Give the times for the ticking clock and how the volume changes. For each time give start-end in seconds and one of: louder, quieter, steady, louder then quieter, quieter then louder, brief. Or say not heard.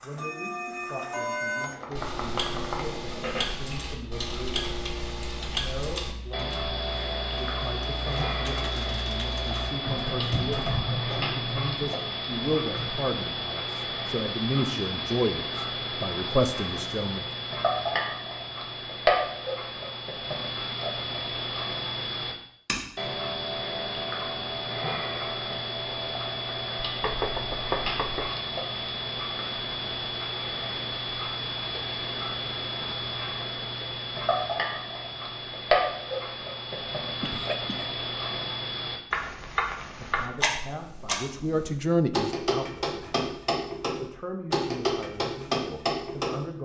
0.0-46.5 steady.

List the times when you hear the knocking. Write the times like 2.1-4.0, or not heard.
26.9-28.3.